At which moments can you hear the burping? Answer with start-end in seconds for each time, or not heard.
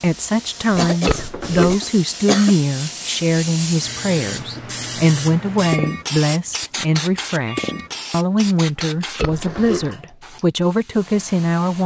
1.1-1.9, 9.2-9.8.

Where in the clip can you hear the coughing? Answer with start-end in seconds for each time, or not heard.
0.8-2.5.